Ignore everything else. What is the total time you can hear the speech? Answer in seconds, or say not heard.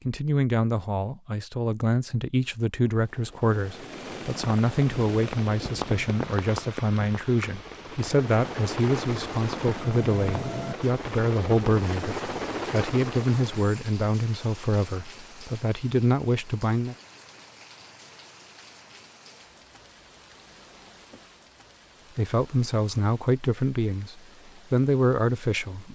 21 s.